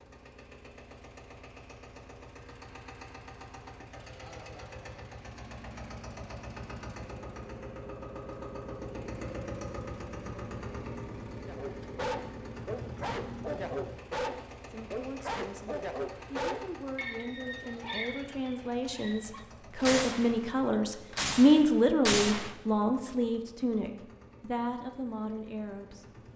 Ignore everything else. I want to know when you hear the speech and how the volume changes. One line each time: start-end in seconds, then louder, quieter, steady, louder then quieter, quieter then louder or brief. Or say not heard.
14.7-26.2 louder then quieter.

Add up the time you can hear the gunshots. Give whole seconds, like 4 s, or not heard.
3 s.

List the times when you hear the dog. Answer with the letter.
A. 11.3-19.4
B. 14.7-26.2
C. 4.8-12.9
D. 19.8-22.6
A.